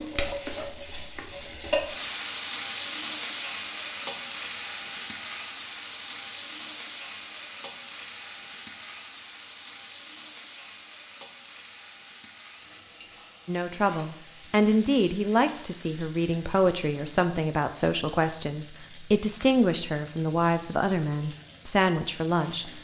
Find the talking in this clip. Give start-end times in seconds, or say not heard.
13.4-22.7.